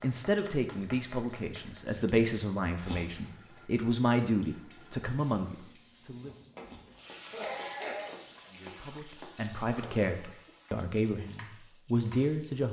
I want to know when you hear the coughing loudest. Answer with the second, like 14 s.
8 s.